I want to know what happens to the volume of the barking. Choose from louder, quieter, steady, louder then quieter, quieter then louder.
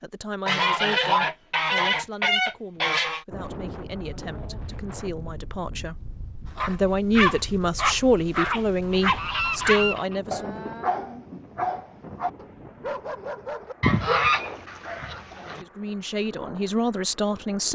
quieter.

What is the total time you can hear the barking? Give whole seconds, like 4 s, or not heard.
8 s.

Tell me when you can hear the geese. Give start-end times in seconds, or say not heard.
0.5-3.2, 8.4-10.2, 13.8-15.6.